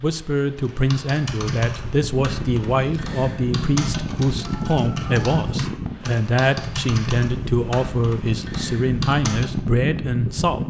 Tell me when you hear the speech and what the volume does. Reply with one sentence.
You can hear the speech from 0.0 to 10.6 s, at a steady volume.